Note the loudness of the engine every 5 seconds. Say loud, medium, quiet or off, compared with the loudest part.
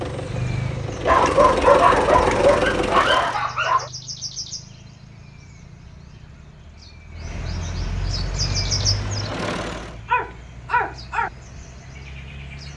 loud, medium, off.